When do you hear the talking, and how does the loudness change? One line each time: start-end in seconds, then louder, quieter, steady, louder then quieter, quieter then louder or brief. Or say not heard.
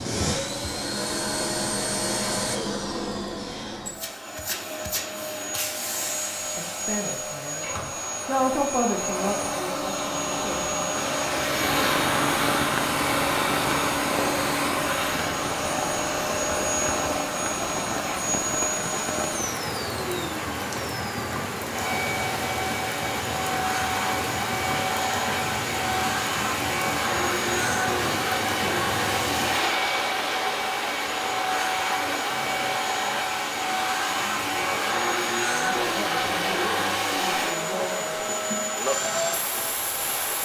6.5-10.8 louder then quieter
35.5-38.2 brief.